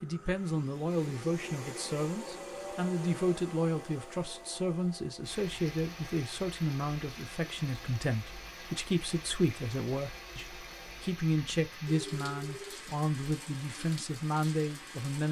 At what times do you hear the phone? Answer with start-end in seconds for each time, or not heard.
11.9-12.8.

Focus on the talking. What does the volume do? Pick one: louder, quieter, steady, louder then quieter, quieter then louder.
steady.